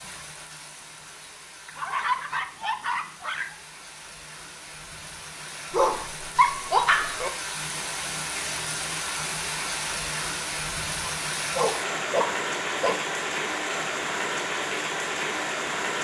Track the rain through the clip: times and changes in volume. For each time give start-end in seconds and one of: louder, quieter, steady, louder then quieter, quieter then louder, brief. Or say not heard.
0.0-15.9 louder.